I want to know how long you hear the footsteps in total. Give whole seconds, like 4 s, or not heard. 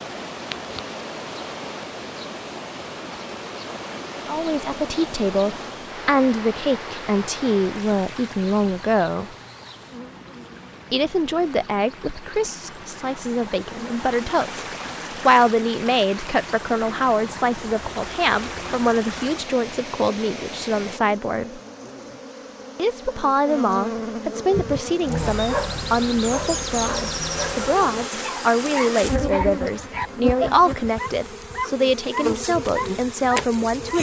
not heard.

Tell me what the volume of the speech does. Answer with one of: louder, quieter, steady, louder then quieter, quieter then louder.
steady.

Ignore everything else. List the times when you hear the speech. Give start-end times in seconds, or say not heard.
4.2-9.3, 10.9-21.6, 22.8-33.9.